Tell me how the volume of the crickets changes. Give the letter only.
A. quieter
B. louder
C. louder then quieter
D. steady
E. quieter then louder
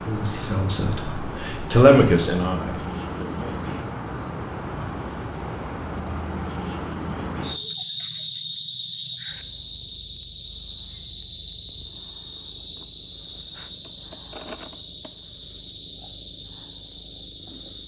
D.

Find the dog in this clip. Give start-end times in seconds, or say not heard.
not heard.